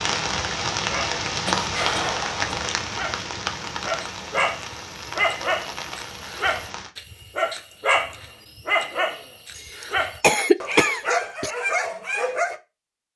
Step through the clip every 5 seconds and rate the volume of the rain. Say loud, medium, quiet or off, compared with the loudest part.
loud, medium, off.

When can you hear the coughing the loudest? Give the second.
10 s.